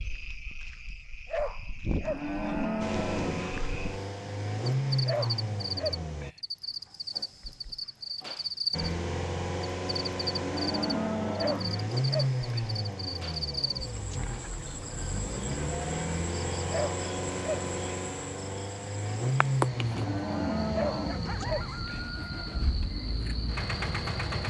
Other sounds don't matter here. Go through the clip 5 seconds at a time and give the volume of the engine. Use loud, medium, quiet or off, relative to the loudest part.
loud, loud, loud, loud, medium.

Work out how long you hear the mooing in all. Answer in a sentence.
You can hear the mooing for 5 seconds altogether.